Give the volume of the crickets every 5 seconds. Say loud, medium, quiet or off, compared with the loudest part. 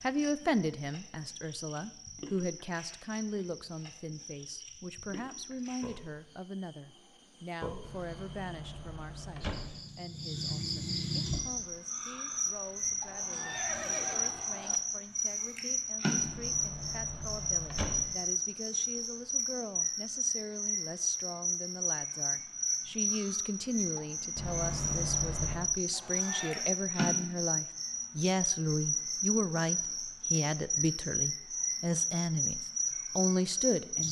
quiet, quiet, loud, loud, loud, loud, loud.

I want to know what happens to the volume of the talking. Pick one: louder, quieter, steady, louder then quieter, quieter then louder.
quieter then louder.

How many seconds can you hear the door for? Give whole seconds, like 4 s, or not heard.
5 s.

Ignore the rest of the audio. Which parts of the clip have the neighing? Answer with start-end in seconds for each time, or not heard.
13.1-14.8, 25.9-26.7.